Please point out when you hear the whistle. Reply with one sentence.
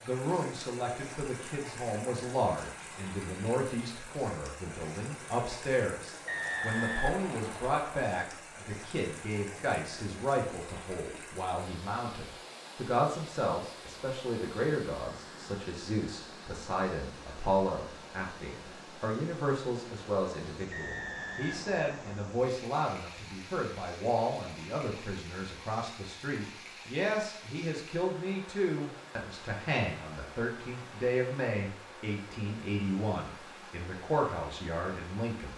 The whistle can be heard from 6.2 to 8.0 s and from 20.7 to 22.2 s.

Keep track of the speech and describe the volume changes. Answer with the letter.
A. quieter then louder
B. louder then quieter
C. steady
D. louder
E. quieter
C.